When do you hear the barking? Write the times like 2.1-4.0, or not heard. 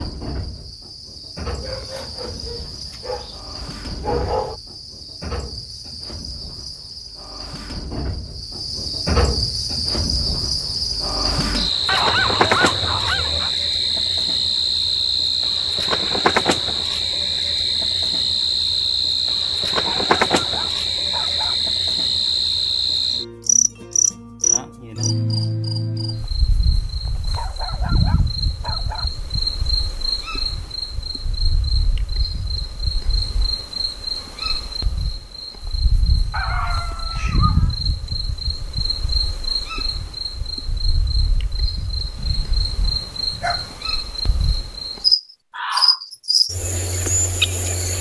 1.6-4.5, 11.8-13.5, 19.6-21.6, 27.1-29.1, 36.3-37.8, 42.1-43.8.